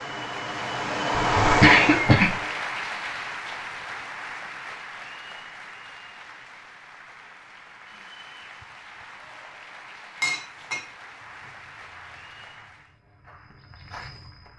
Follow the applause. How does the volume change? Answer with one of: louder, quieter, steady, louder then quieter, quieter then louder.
quieter.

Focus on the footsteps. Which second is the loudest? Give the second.
14 s.